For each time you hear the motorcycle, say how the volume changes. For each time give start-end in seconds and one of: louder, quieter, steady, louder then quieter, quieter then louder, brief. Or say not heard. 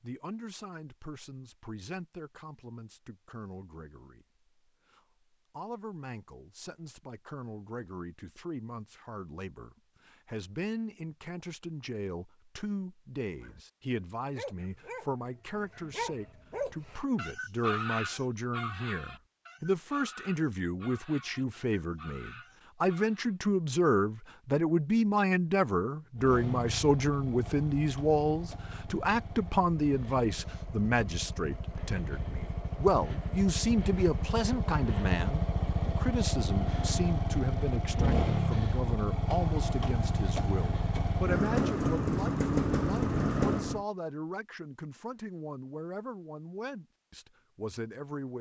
26.1-43.9 louder.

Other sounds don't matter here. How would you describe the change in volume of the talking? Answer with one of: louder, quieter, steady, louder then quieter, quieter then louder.
louder then quieter.